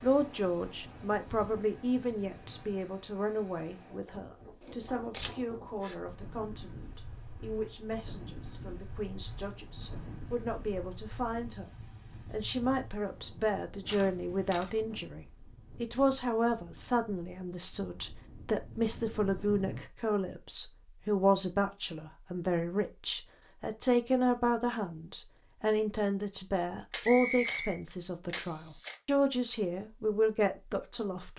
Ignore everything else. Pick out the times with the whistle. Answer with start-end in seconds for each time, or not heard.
27.0-27.8.